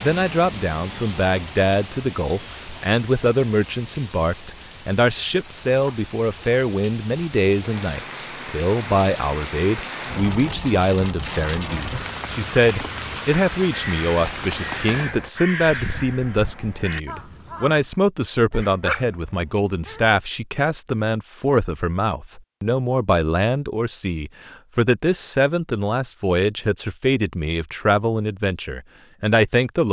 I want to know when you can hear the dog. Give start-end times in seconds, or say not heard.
18.5-20.1.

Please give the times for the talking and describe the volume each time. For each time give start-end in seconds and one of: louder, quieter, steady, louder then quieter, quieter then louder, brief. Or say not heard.
0.0-29.8 steady.